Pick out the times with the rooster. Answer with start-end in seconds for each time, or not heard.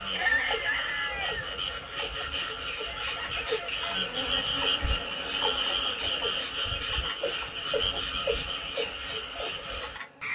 0.1-4.8.